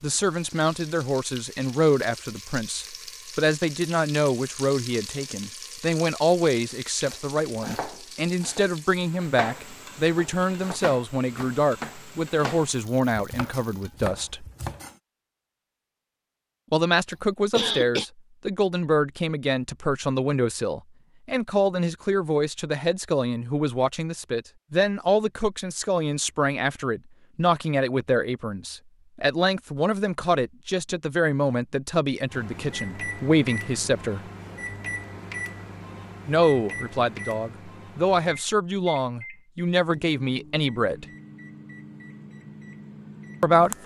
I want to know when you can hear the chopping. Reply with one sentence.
The chopping can be heard from 7.0 to 14.9 s.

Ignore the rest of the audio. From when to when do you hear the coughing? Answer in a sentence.
The coughing can be heard from 17.6 to 18.1 s.